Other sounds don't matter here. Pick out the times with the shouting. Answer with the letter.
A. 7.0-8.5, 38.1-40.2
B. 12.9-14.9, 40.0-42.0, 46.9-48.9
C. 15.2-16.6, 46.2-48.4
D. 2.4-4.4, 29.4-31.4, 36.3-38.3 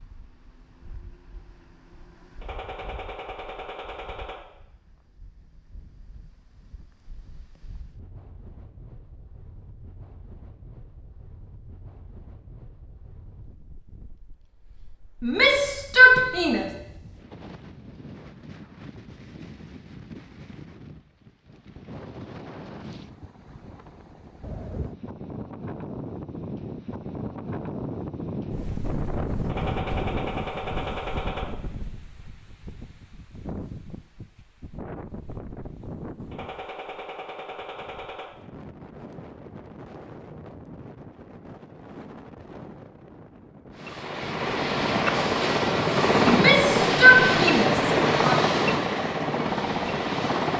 C.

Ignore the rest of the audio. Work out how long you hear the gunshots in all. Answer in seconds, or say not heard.
6 s.